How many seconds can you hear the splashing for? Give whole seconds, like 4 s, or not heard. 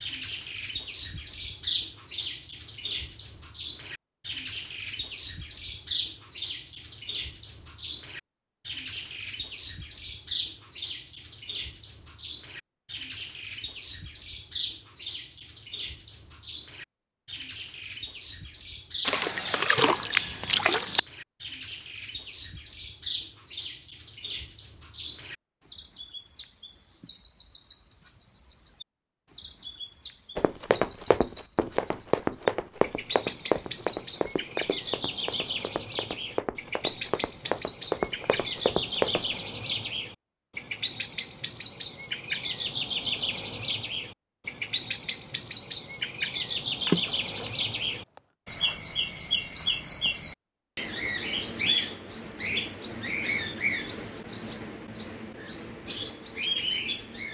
3 s.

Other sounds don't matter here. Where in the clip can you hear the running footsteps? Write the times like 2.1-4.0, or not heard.
30.4-39.4.